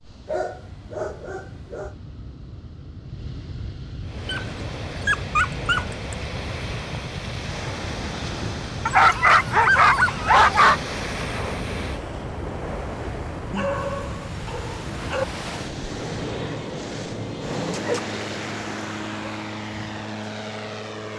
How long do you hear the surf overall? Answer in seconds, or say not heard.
17 s.